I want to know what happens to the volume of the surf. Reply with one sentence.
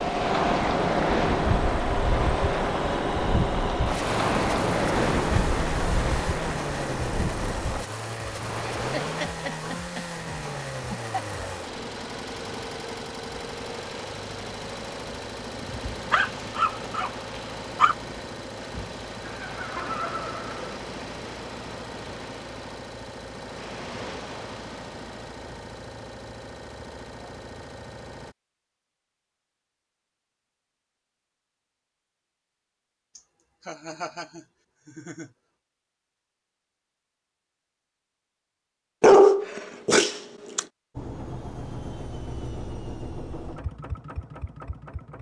The loudness of the surf goes down.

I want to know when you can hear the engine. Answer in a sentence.
The engine can be heard from 0.0 to 28.4 s and from 41.0 to 45.1 s.